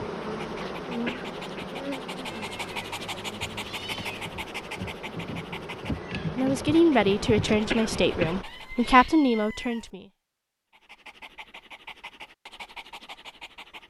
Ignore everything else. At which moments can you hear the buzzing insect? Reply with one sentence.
You can hear the buzzing insect from 0.0 to 8.4 s.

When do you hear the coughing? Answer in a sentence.
The coughing can be heard from 1.1 to 1.6 s and from 7.7 to 9.2 s.